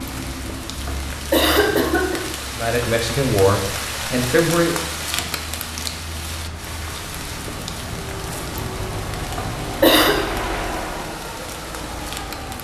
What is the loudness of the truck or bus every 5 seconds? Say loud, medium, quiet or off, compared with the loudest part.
medium, loud, loud.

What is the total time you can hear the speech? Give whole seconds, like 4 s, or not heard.
2 s.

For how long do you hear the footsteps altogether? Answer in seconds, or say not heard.
not heard.